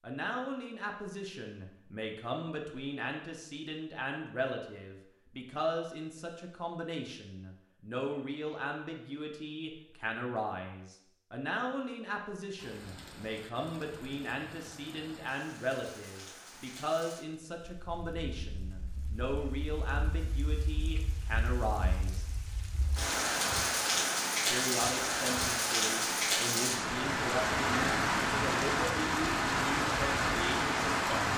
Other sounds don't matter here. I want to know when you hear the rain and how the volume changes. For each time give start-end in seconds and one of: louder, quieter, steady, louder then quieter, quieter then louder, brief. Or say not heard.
12.6-31.3 louder.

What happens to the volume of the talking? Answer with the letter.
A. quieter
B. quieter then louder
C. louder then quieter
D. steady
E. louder
D.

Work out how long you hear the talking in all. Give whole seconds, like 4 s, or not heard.
29 s.